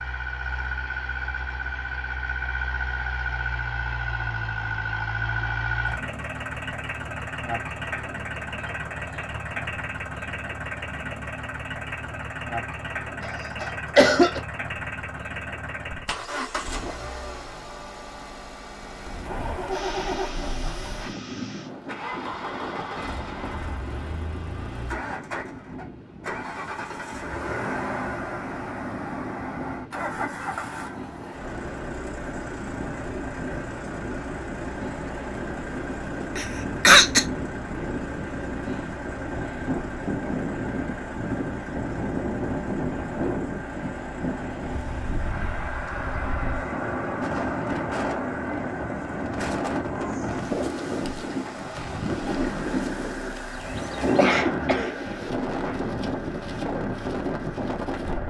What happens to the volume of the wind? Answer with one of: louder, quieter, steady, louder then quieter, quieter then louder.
louder.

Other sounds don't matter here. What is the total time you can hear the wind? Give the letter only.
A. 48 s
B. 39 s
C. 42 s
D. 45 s
B.